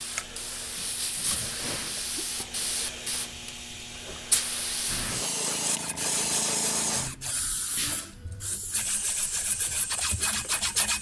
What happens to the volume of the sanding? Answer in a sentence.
The loudness of the sanding goes down, then up.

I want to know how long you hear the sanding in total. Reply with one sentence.
The sanding can be heard for 5 seconds in total.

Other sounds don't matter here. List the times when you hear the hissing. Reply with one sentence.
The hissing can be heard from 0.0 to 10.7 s.